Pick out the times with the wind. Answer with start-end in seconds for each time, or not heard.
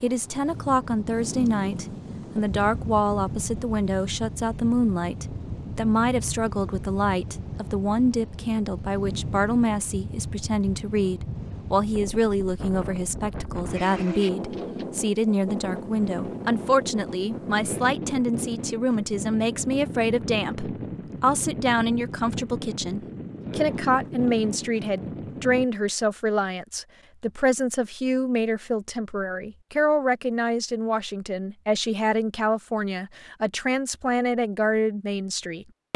0.0-25.6.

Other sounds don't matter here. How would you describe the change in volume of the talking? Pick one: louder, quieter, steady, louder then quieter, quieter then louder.
steady.